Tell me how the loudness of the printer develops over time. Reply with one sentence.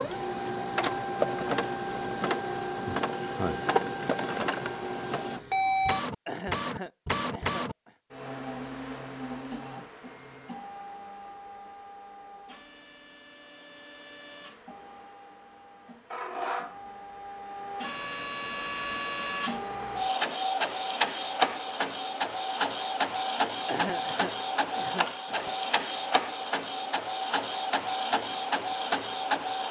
The loudness of the printer goes down, then up.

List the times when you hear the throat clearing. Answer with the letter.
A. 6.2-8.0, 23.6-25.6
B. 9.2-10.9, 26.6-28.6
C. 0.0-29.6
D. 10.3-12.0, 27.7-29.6
A.